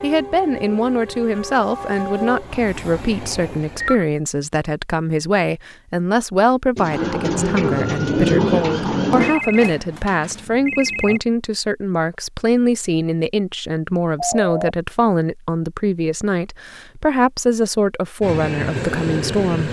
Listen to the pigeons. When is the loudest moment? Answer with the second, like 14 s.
8 s.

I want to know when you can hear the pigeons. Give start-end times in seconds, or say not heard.
6.8-9.4.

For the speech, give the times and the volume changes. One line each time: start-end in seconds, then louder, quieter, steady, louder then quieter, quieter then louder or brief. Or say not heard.
0.0-19.6 steady.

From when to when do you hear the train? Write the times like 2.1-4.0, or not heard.
0.0-4.0, 18.2-19.6.